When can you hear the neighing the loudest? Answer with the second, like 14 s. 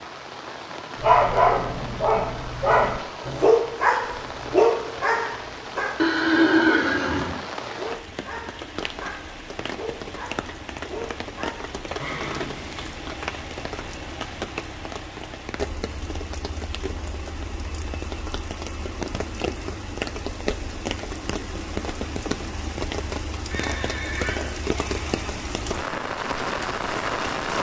7 s.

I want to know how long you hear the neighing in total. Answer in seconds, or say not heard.
4 s.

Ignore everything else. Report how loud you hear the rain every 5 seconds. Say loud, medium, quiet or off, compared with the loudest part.
medium, medium, medium, medium, loud, loud.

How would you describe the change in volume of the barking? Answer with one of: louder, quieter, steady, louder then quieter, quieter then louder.
quieter.